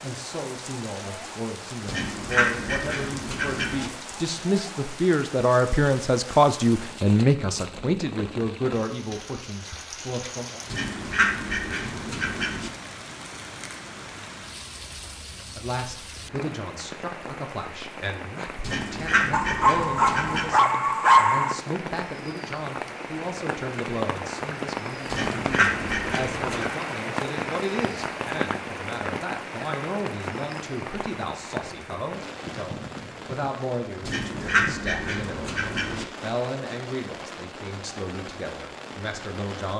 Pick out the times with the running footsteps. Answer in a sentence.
The running footsteps can't be heard in this clip.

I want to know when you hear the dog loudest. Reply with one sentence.
The loudest moment of the dog is at 21 seconds.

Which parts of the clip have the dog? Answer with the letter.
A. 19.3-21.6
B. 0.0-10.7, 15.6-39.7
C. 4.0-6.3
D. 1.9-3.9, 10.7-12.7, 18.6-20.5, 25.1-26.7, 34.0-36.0
A.